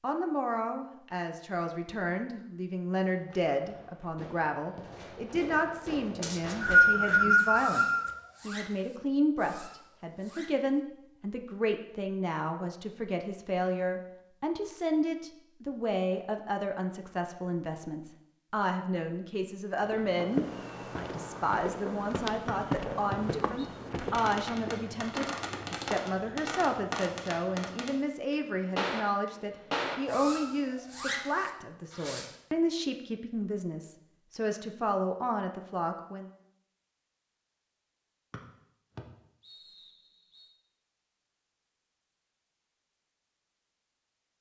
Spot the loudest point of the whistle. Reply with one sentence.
The volume of the whistle peaks at 7 seconds.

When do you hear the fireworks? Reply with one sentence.
The fireworks can be heard from 3.1 to 10.8 s and from 20.1 to 32.4 s.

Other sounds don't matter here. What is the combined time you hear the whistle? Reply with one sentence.
The whistle can be heard for 5 seconds in total.